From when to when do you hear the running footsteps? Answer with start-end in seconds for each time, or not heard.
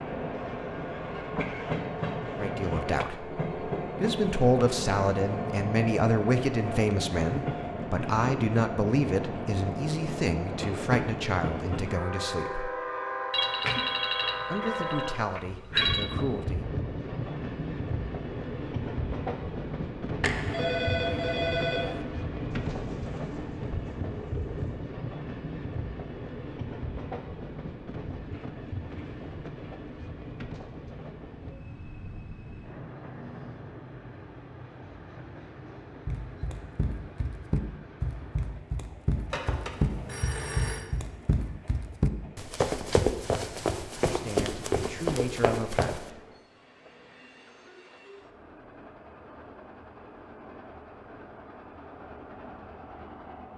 36.0-46.1.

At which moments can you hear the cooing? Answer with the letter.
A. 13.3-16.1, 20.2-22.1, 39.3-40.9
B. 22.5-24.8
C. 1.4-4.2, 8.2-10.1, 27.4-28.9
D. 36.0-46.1
B.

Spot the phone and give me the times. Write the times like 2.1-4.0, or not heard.
13.3-16.1, 20.2-22.1, 39.3-40.9.